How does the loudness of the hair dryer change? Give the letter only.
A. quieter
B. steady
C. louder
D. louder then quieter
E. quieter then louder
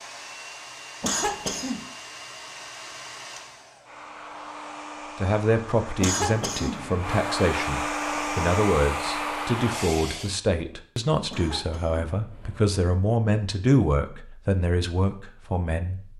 C.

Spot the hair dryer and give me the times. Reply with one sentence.
The hair dryer can be heard from 0.0 to 10.3 s.